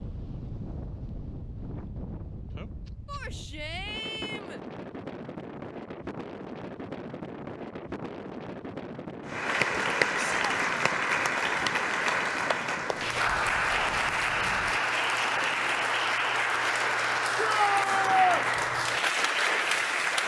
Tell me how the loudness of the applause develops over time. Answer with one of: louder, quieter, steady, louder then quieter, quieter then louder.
steady.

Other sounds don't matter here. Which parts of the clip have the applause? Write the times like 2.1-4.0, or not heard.
9.2-20.2.